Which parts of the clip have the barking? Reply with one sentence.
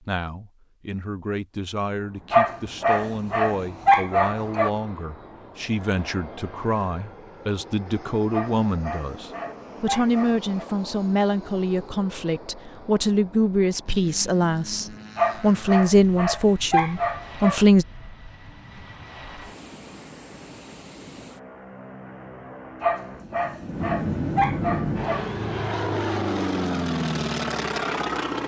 The barking can be heard from 2.3 to 4.7 s, from 8.3 to 10.7 s, from 15.2 to 17.6 s and from 22.8 to 25.2 s.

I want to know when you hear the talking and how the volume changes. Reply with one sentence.
You can hear the talking from 0.0 to 17.9 s, getting louder.